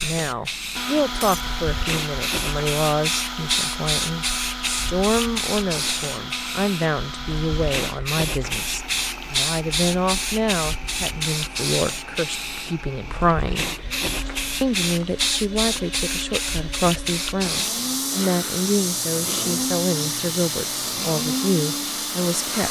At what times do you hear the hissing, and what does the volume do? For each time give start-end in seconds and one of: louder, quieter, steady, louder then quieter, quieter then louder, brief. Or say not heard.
0.0-22.6 steady.